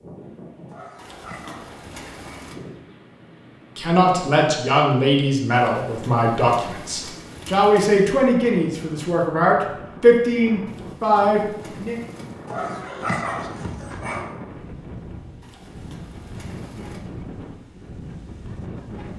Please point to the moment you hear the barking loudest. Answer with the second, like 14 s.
13 s.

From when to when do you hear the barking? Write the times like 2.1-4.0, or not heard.
0.7-2.4, 12.4-14.2.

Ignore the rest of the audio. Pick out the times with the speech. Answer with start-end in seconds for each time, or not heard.
3.8-11.9.